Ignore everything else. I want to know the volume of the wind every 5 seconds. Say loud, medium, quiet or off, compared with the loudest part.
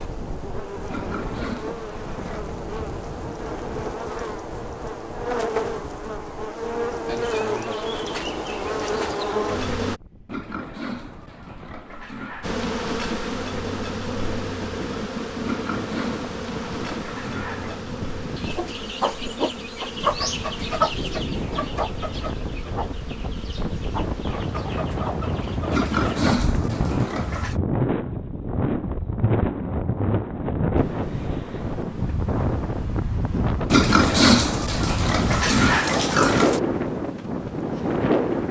quiet, quiet, quiet, quiet, medium, loud, loud, loud.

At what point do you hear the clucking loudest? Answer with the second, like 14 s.
21 s.